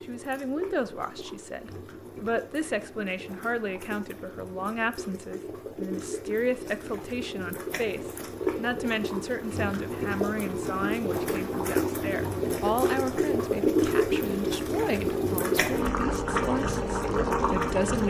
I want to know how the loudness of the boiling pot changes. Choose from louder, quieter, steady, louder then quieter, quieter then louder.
louder.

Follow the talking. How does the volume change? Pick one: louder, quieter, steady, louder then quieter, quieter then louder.
steady.